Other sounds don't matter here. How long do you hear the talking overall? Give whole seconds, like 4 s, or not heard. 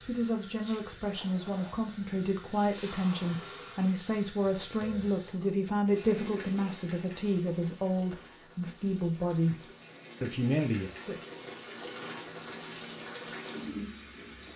11 s.